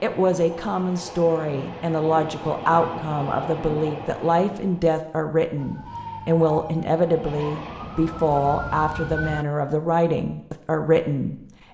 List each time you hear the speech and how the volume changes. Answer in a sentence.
You can hear the speech from 0.0 to 11.6 s, at a steady volume.